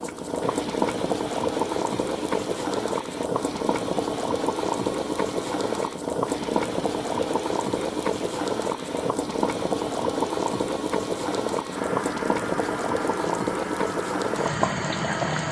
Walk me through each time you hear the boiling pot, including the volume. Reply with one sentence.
The boiling pot can be heard from 0.0 to 15.4 s, at a steady volume.